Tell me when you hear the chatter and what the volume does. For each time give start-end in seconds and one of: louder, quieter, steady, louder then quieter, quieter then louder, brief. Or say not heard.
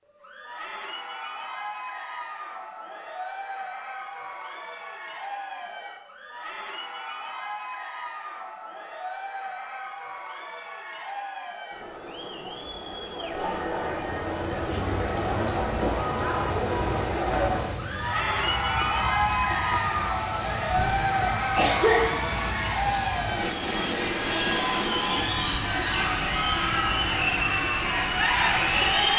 0.1-29.1 louder.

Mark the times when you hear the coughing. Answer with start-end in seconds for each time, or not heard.
20.8-22.5.